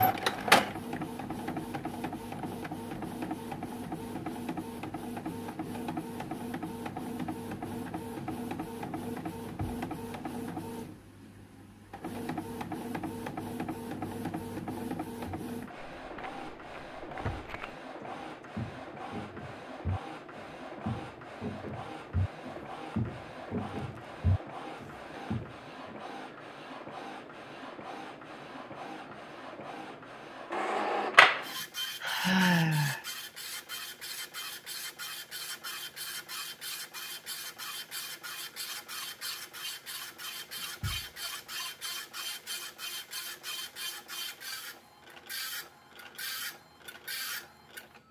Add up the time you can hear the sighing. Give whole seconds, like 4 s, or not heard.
2 s.